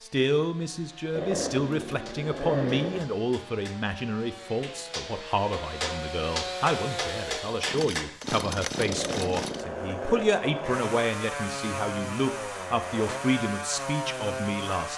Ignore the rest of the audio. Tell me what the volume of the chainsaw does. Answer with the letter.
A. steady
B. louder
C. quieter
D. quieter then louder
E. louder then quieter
B.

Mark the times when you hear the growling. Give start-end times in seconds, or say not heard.
1.1-3.0, 8.8-10.3.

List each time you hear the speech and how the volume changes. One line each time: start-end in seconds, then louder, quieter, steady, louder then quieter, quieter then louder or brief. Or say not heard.
0.0-14.9 steady.